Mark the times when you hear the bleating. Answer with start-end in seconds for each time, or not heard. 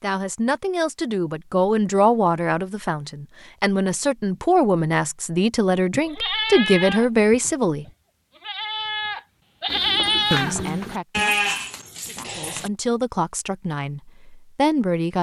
5.9-12.7.